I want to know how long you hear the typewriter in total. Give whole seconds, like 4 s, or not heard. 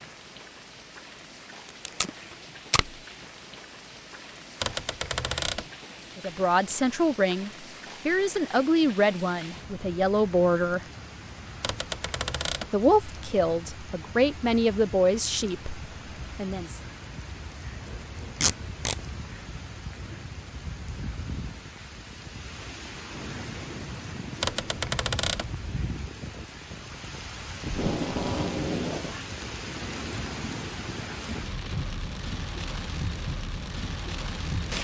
3 s.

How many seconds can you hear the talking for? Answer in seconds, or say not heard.
9 s.